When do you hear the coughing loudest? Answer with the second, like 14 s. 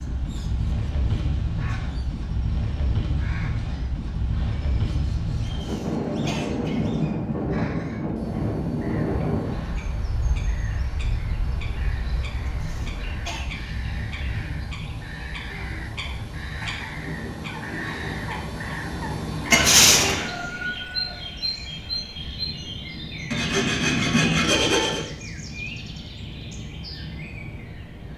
20 s.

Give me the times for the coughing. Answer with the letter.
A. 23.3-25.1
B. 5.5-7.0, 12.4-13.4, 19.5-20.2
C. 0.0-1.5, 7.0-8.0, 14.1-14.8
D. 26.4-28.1
B.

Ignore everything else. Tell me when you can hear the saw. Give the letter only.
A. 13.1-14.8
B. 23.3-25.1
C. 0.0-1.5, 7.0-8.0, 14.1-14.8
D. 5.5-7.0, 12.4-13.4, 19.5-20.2
B.